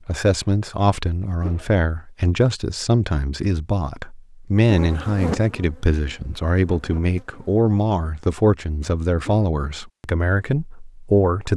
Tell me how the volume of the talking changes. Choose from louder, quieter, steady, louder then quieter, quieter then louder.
steady.